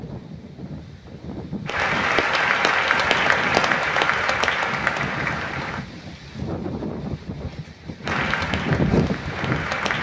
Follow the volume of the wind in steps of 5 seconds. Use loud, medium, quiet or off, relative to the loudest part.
medium, loud.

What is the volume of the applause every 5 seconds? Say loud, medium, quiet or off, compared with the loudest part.
loud, medium.